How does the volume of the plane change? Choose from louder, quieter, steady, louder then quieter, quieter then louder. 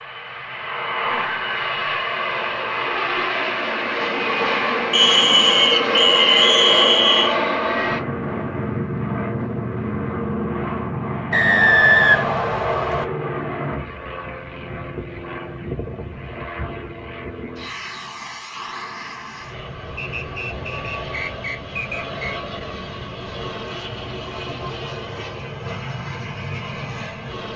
quieter.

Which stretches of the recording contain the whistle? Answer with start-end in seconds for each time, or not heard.
4.9-7.3, 11.3-13.1, 19.9-22.4.